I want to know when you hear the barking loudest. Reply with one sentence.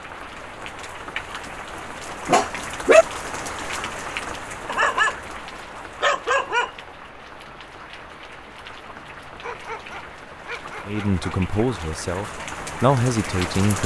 The volume of the barking peaks at 3 seconds.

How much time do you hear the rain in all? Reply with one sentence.
You can hear the rain for 14 seconds altogether.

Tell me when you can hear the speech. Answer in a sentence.
The speech can be heard from 10.8 to 13.8 s.